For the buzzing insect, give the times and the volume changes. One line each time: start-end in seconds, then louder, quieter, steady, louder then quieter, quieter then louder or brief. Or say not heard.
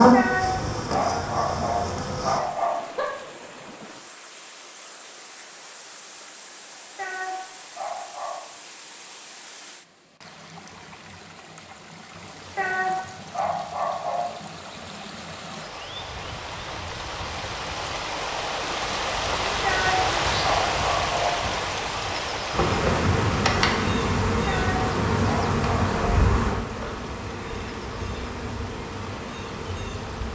0.0-2.4 brief
22.5-30.2 quieter.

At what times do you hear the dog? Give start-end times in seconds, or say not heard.
0.1-3.1, 7.0-8.5, 12.6-14.2, 19.6-21.4, 24.4-26.1.